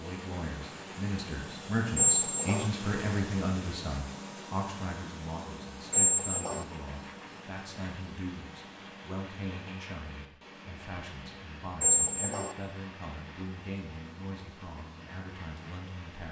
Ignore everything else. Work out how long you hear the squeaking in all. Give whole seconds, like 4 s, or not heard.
2 s.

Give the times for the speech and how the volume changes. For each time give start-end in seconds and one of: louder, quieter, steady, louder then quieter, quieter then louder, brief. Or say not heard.
0.0-16.2 quieter.